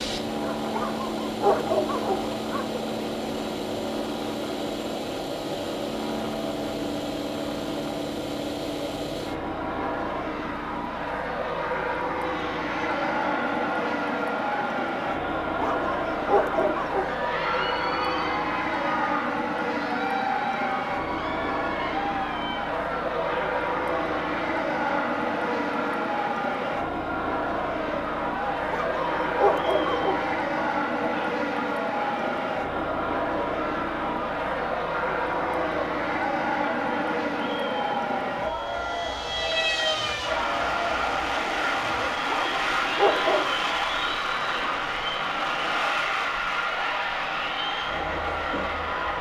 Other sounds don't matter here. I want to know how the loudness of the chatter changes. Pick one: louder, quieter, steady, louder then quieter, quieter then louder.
steady.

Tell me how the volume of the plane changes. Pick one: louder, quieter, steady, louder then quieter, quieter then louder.
steady.